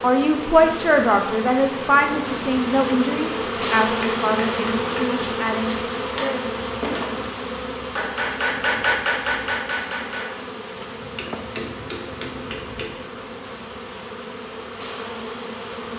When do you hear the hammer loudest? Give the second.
9 s.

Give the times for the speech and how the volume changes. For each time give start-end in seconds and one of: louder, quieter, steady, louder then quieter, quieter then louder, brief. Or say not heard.
0.0-6.5 quieter.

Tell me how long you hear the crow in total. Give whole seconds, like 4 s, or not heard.
not heard.